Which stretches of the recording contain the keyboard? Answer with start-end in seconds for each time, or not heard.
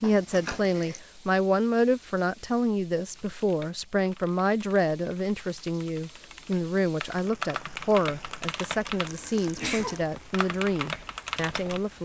3.1-11.8.